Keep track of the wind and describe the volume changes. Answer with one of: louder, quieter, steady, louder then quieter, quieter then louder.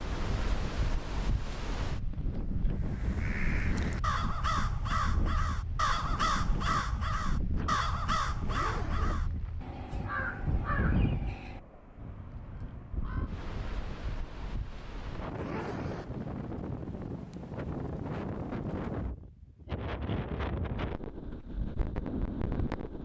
steady.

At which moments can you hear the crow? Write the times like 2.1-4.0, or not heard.
2.7-13.3.